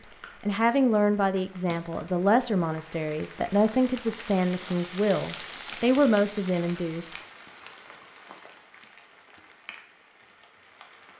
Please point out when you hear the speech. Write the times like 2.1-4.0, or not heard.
0.4-7.2.